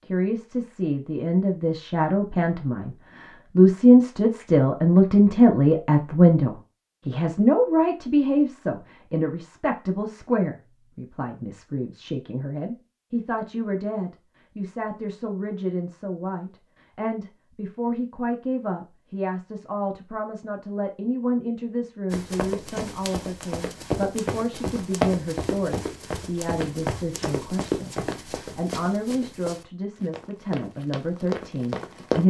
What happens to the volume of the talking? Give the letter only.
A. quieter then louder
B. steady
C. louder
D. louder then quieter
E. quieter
E.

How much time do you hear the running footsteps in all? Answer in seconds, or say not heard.
10 s.